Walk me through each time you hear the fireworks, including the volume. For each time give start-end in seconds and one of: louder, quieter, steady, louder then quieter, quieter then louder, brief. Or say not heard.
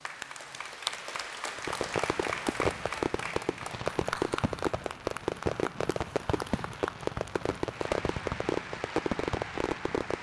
1.6-10.1 steady.